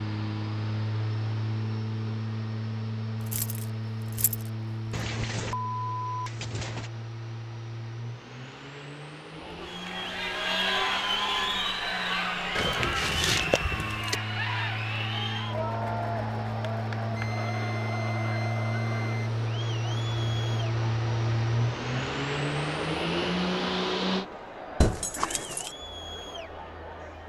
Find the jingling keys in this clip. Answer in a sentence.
You can hear the jingling keys from 3.2 to 4.5 s, from 12.6 to 14.2 s and from 24.8 to 25.8 s.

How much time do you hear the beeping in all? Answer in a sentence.
You can hear the beeping for 4 seconds altogether.